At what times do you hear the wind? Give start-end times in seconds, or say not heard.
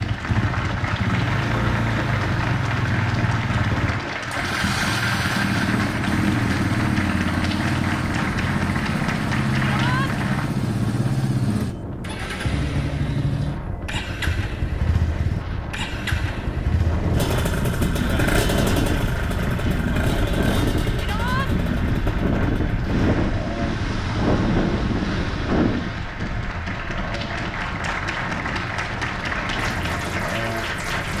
0.0-31.1.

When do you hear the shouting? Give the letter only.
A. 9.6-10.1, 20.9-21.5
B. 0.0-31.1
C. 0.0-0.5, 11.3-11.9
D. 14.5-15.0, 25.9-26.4
A.